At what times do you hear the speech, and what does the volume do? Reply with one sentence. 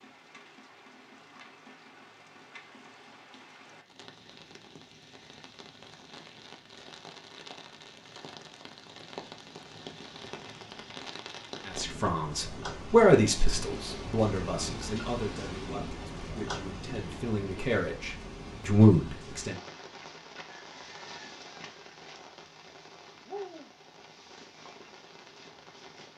The speech can be heard from 11.7 to 19.6 s, getting quieter then louder.